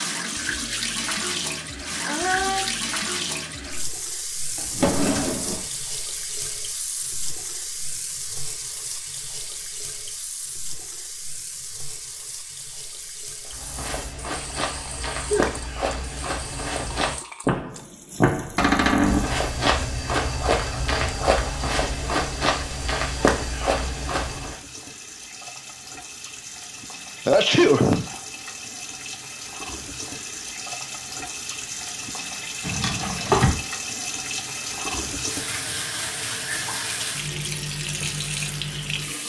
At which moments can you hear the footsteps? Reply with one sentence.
The footsteps can be heard from 13.4 to 24.6 s.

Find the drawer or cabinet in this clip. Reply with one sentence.
You can hear the drawer or cabinet from 4.5 to 5.7 s, from 18.6 to 19.3 s and from 32.6 to 33.6 s.